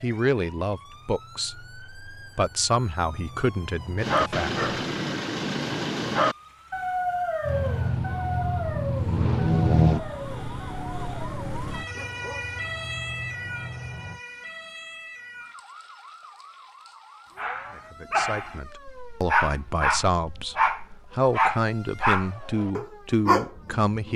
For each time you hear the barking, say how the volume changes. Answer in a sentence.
You can hear the barking from 4.0 to 12.6 s, getting quieter; and from 17.4 to 24.1 s, at a steady volume.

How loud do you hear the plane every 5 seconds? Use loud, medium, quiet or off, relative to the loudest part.
quiet, loud, quiet, off, off.